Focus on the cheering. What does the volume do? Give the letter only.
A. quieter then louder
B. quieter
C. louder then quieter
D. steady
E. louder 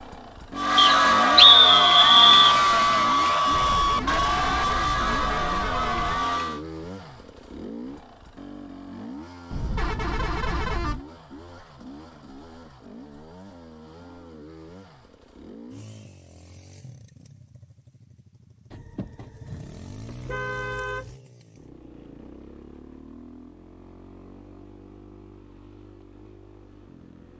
B.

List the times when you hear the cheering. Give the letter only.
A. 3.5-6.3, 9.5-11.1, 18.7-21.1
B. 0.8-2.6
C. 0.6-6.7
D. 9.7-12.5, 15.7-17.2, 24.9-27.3
C.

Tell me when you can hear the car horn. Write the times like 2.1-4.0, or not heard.
3.5-6.3, 9.5-11.1, 18.7-21.1.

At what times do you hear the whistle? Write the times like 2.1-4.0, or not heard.
0.8-2.6.